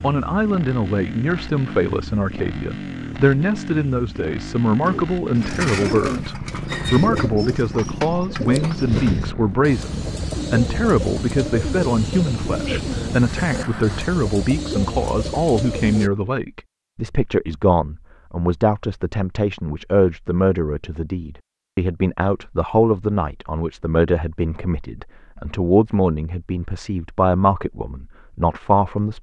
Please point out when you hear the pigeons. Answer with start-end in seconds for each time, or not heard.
4.8-16.1.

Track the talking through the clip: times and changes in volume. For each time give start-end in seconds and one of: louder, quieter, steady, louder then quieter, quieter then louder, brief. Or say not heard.
0.0-29.1 steady.